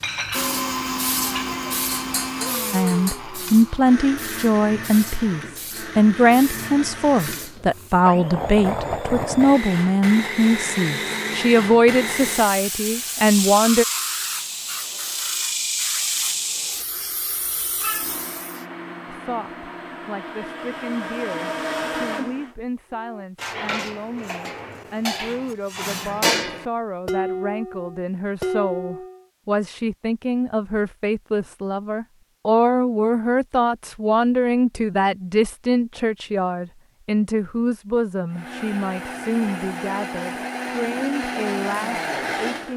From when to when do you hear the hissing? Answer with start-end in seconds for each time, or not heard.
0.0-8.0, 12.1-18.6.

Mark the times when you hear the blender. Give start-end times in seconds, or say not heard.
0.0-12.6, 17.9-22.6, 38.3-42.7.